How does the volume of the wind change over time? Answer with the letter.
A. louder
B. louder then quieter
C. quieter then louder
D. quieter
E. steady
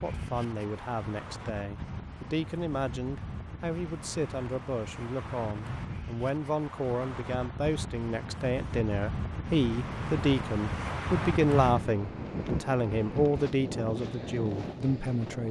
A.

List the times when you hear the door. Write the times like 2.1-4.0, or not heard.
not heard.